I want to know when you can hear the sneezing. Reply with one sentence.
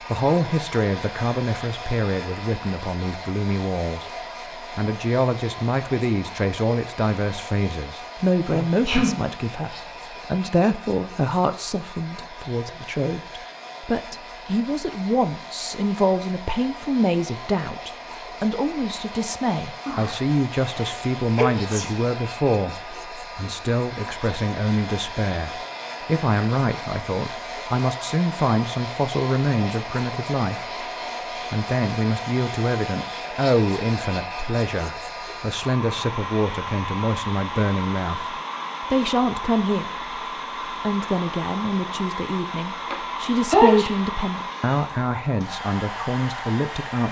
The sneezing can be heard from 8.5 to 9.2 s, from 19.9 to 21.9 s and from 42.9 to 43.9 s.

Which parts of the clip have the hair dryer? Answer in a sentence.
The hair dryer can be heard from 0.0 to 47.0 s.